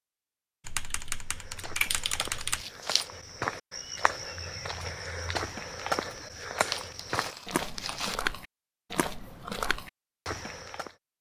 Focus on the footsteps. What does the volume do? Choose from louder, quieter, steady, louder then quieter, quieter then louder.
louder.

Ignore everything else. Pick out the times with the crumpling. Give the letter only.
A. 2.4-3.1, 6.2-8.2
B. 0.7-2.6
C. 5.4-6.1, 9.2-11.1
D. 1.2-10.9
A.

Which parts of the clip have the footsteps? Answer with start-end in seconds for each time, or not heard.
1.2-10.9.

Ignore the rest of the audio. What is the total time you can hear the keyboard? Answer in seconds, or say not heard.
2 s.